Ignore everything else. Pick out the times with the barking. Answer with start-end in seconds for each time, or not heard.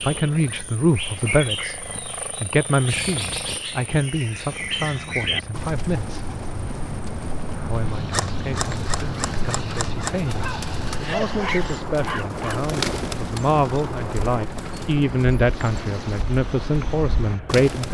10.3-12.6.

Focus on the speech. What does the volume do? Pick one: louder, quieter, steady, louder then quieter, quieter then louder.
quieter then louder.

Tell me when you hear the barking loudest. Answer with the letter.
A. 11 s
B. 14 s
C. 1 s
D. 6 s
A.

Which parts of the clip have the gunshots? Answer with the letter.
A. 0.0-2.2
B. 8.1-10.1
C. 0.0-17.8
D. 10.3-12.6
B.